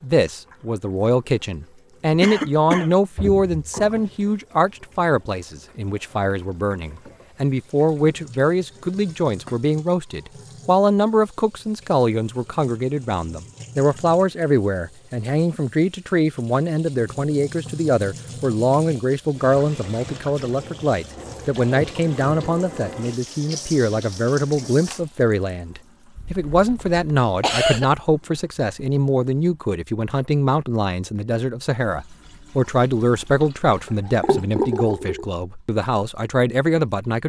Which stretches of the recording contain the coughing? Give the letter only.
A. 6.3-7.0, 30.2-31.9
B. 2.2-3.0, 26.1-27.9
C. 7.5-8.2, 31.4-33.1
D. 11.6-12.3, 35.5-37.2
B.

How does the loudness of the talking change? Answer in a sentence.
The volume of the talking stays about the same.